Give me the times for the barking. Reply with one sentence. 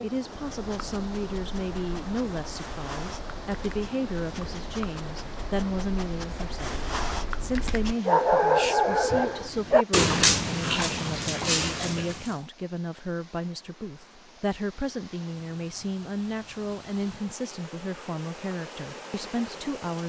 You can hear the barking from 0.5 to 12.4 s.